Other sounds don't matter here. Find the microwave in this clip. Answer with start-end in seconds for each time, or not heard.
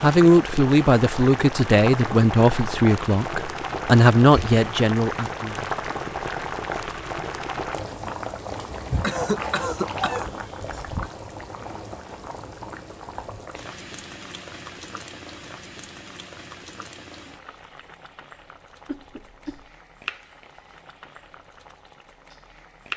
not heard.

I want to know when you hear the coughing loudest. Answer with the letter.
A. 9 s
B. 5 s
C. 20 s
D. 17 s
A.